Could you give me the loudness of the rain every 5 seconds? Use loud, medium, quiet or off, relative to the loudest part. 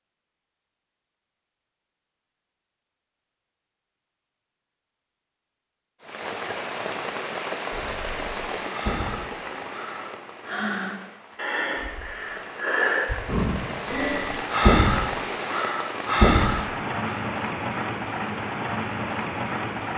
off, loud, medium, loud.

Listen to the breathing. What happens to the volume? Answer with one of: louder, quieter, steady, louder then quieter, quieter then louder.
louder.